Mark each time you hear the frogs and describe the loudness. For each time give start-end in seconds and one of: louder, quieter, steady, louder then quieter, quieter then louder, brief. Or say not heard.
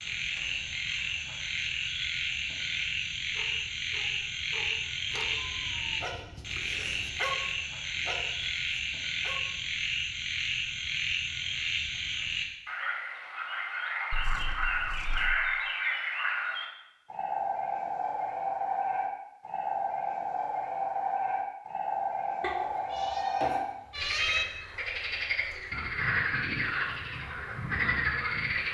0.0-28.6 steady.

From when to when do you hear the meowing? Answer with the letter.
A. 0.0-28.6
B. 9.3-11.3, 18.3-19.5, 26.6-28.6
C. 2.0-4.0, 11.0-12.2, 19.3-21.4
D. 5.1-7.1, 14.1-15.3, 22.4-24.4
D.